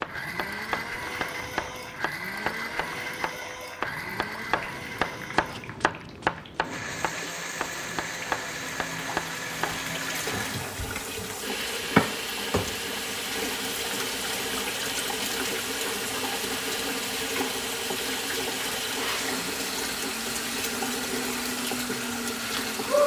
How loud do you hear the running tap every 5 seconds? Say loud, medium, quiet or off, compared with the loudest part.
quiet, quiet, loud, loud, loud.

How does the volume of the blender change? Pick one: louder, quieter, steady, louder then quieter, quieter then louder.
steady.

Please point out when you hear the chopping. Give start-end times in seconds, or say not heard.
0.0-9.8.